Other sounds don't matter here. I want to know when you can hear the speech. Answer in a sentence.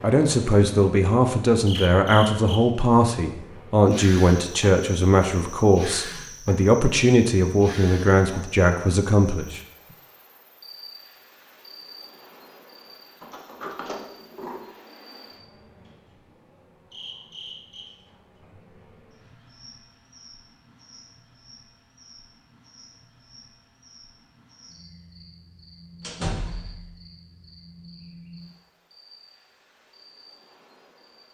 The speech can be heard from 0.0 to 9.6 s.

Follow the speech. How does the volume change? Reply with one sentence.
The volume of the speech stays about the same.